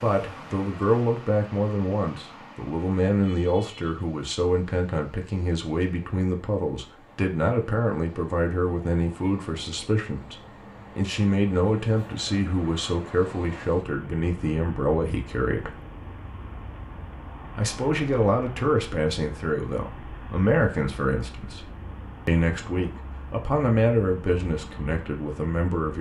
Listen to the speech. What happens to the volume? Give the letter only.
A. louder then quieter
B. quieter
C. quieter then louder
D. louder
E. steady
E.